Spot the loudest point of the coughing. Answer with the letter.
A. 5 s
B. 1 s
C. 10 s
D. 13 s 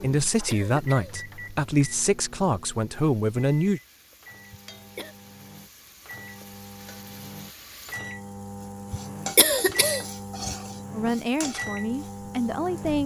C.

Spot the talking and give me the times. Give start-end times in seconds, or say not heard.
0.0-3.8, 10.9-13.0.